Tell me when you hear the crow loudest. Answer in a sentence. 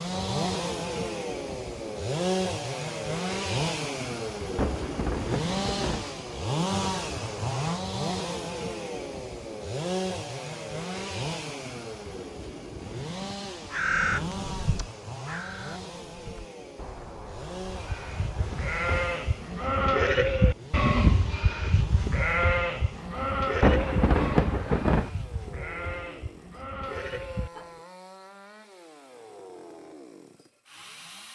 The loudest moment of the crow is at 14 seconds.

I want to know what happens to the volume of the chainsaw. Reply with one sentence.
The loudness of the chainsaw goes down.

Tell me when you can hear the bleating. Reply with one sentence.
The bleating can be heard from 17.6 to 27.9 s.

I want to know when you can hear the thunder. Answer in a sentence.
You can hear the thunder from 4.5 to 6.0 s and from 23.6 to 25.1 s.